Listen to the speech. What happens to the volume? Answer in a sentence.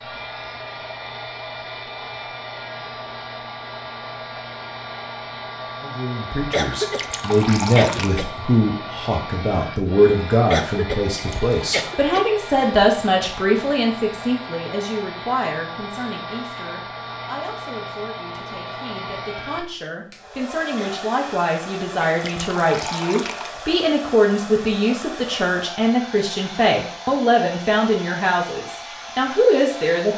The loudness of the speech goes down, then up.